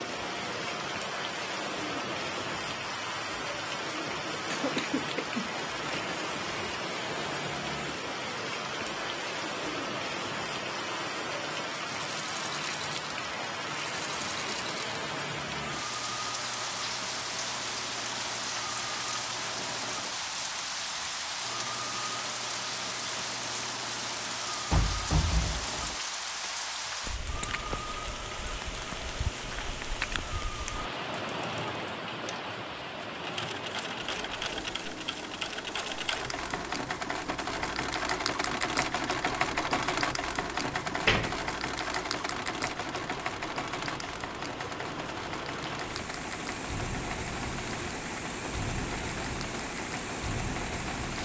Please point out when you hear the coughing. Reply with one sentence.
The coughing can be heard from 4.5 to 5.6 s.